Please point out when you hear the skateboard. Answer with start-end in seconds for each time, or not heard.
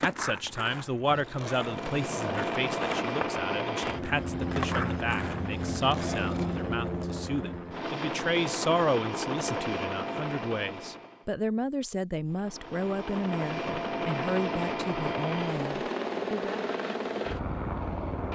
0.0-6.7.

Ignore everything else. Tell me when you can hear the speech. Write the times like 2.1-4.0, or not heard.
0.0-16.6.